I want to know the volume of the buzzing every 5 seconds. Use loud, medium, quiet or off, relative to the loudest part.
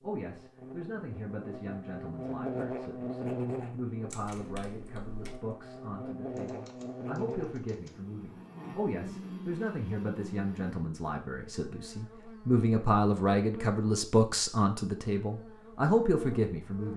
loud, loud, medium, medium.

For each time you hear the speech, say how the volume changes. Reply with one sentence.
You can hear the speech from 0.0 to 16.9 s, getting louder.